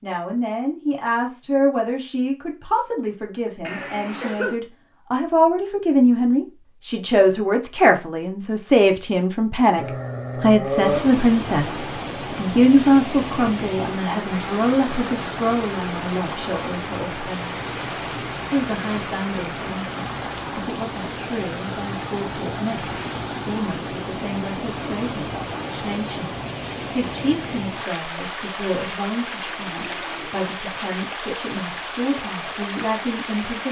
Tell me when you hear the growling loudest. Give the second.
11 s.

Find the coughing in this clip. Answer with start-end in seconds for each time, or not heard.
3.6-4.6.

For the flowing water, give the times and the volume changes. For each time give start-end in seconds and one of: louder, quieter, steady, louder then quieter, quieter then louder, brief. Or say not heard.
10.7-33.6 steady.